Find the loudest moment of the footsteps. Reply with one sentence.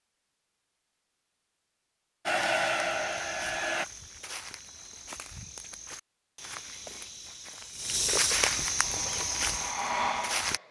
The loudest moment of the footsteps is at 8 seconds.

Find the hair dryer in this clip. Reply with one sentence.
You can hear the hair dryer from 2.2 to 3.9 s and from 8.8 to 10.6 s.